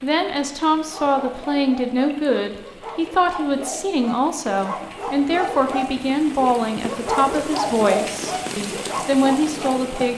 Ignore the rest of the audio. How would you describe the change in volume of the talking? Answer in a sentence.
The volume of the talking stays about the same.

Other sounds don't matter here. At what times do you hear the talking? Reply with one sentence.
The talking can be heard from 0.0 to 10.1 s.